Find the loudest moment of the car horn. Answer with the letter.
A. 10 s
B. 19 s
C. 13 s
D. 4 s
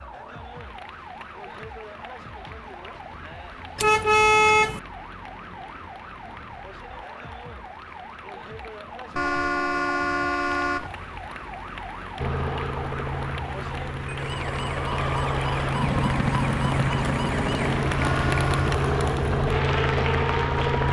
D.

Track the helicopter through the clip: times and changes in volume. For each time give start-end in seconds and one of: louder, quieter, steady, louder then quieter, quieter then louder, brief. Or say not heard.
12.2-20.8 louder.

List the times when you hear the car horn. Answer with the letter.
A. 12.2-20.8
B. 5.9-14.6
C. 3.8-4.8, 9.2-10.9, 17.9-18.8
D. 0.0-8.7
C.